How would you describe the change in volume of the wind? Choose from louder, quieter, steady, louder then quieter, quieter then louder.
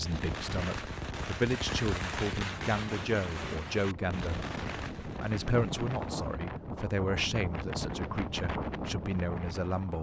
louder.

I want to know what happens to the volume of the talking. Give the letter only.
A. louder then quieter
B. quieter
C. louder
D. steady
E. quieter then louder
D.